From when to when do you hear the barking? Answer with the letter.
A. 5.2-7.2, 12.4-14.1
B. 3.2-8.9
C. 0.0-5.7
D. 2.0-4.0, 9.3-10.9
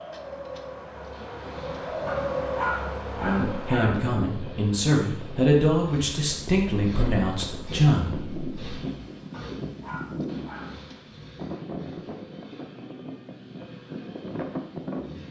D.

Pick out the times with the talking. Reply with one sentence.
You can hear the talking from 3.2 to 8.9 s.